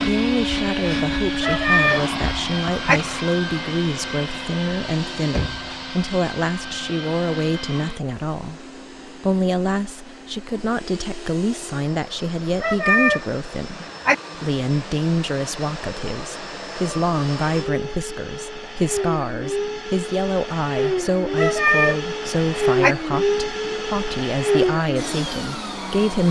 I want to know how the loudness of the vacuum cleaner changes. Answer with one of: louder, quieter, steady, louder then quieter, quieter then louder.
quieter then louder.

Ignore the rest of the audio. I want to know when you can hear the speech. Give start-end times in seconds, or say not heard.
0.1-26.2.